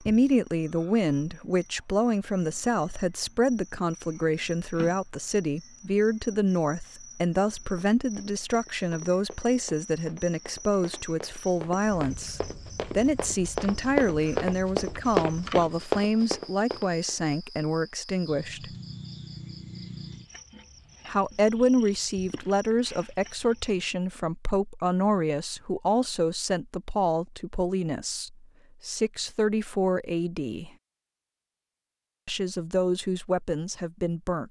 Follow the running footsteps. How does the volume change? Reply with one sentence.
The volume of the running footsteps goes up.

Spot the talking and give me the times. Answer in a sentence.
The talking can be heard from 0.0 to 18.7 s, from 21.1 to 30.7 s and from 32.2 to 34.4 s.